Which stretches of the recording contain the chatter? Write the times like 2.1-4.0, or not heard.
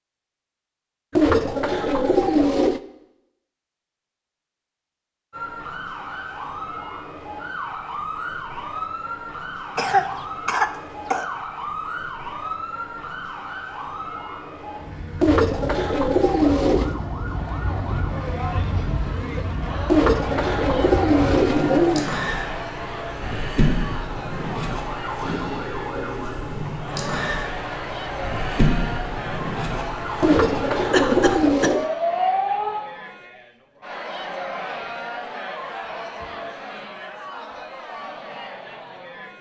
17.2-39.3.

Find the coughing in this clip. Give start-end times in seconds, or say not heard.
9.8-11.2, 30.9-31.8.